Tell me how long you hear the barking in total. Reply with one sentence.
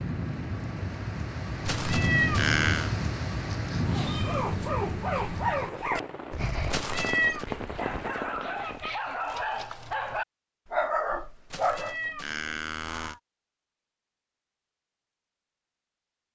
You can hear the barking for 8 seconds altogether.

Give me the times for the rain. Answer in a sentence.
The rain can be heard from 0.0 to 8.9 s.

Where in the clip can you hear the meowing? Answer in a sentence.
The meowing can be heard from 1.6 to 2.9 s, from 6.7 to 7.5 s and from 11.5 to 13.2 s.